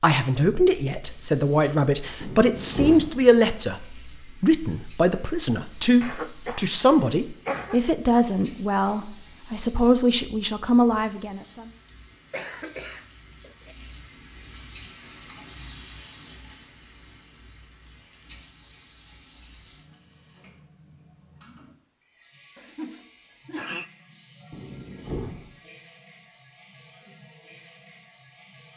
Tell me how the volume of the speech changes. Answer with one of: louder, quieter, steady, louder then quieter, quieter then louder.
steady.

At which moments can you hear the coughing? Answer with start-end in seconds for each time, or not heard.
6.0-7.8, 12.3-13.8, 22.6-23.9.